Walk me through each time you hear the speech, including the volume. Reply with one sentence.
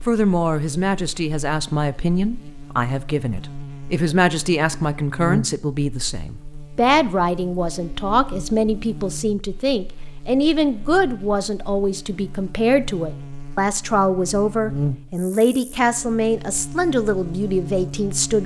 The speech can be heard from 0.1 to 18.4 s, at a steady volume.